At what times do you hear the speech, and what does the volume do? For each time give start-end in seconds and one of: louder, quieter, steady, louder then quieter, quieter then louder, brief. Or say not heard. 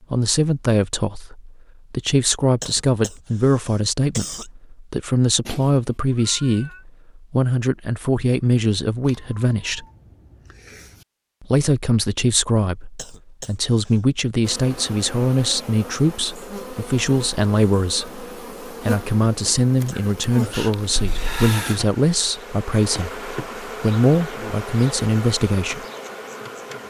0.1-9.8 steady
11.4-25.9 steady.